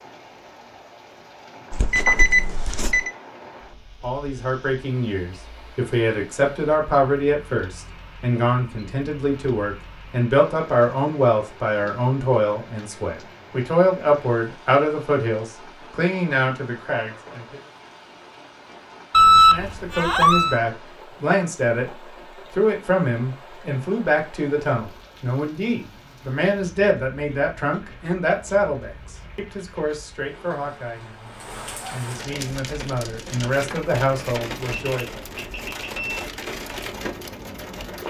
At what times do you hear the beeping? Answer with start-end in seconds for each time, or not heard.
1.7-3.1, 19.1-20.6, 34.7-36.2.